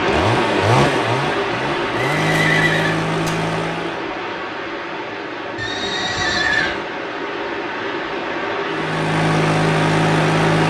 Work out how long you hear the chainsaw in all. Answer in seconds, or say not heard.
6 s.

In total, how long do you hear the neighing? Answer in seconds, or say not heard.
3 s.